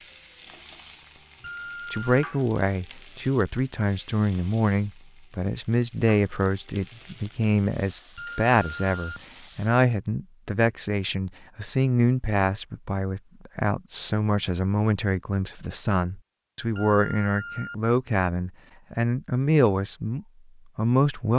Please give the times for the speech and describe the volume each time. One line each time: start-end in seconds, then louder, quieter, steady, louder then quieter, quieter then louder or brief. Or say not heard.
1.9-21.3 steady.